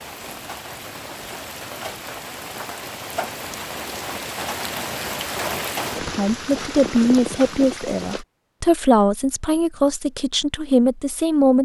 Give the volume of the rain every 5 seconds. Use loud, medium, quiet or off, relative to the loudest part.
loud, loud, off.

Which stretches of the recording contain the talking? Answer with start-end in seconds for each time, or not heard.
6.0-11.5.